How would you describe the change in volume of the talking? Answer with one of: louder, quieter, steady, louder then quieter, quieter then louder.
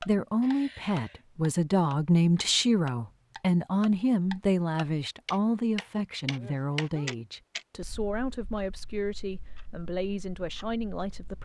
quieter.